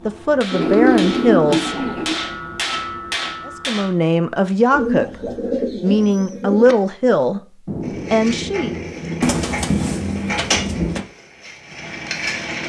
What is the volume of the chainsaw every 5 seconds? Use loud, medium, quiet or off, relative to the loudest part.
off, medium, loud.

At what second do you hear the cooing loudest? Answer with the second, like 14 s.
1 s.